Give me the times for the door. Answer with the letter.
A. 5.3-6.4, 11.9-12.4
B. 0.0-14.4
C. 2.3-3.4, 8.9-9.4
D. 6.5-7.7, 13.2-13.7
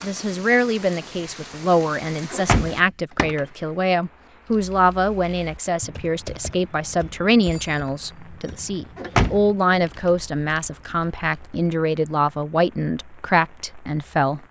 C.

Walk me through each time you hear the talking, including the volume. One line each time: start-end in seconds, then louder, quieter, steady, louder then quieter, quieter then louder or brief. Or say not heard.
0.0-14.4 steady.